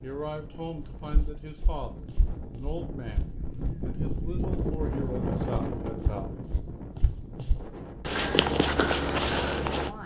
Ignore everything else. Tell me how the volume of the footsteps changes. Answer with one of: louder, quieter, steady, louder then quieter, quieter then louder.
louder.